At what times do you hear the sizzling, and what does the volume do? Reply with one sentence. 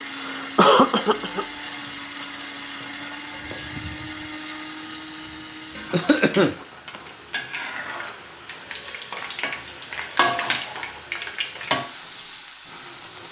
You can hear the sizzling from 0.0 to 13.2 s, getting louder.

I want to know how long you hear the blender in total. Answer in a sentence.
You can hear the blender for 13 seconds altogether.